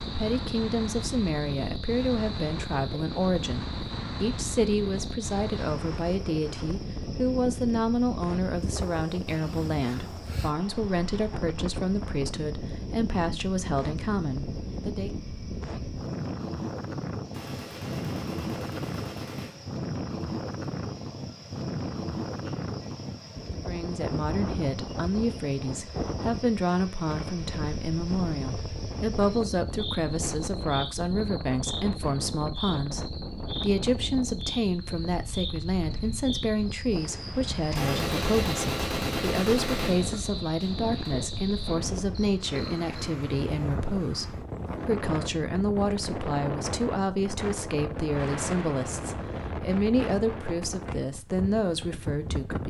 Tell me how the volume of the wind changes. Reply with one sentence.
The loudness of the wind stays about the same.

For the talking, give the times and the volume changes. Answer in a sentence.
You can hear the talking from 0.1 to 15.2 s, at a steady volume; and from 23.6 to 52.6 s, at a steady volume.